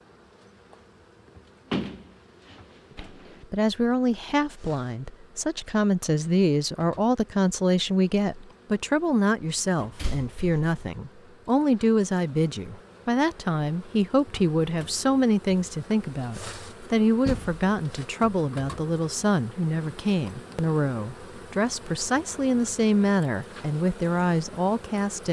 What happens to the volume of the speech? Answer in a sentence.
The volume of the speech stays about the same.